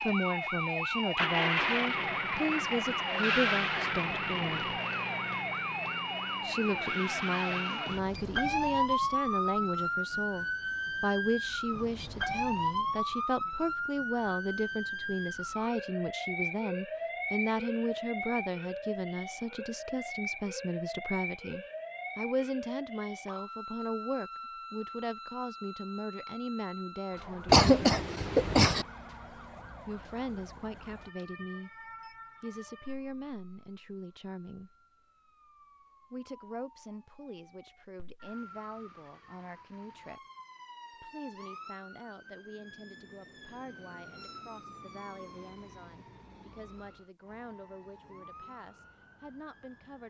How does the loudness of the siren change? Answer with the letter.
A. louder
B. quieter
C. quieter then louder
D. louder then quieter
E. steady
B.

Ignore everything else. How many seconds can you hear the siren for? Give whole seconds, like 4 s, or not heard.
50 s.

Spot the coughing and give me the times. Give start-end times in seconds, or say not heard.
27.4-28.9.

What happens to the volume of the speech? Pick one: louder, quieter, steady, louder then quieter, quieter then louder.
quieter.